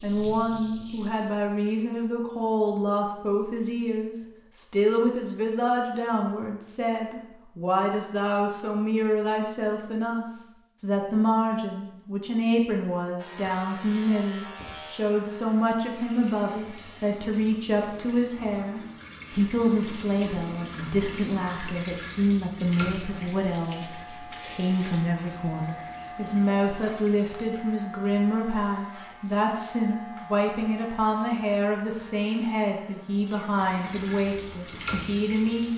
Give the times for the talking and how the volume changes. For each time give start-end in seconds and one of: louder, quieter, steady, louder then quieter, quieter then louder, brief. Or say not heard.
0.0-35.7 steady.